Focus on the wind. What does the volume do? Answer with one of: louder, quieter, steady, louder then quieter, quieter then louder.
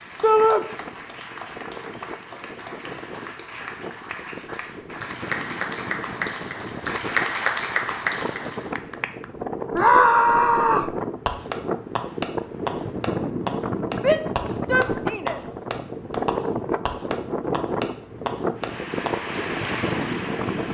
louder.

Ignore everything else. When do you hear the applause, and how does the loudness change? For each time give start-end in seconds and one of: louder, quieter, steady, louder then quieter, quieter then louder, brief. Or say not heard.
0.0-9.2 louder
18.6-20.6 brief.